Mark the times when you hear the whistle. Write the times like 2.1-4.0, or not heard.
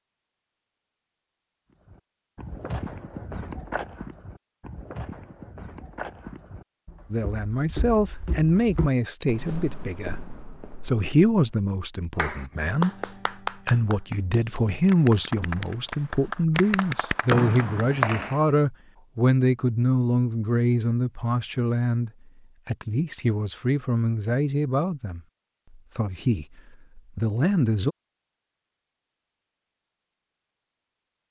17.2-18.4.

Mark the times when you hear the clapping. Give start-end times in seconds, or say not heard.
12.2-17.9.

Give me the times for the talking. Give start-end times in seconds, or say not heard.
7.1-10.2, 10.8-12.9, 13.7-25.2, 25.9-27.9.